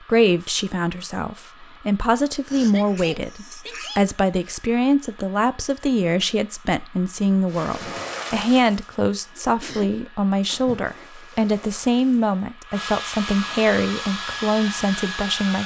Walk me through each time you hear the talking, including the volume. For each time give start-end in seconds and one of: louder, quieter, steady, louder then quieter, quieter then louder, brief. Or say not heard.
0.1-15.6 steady.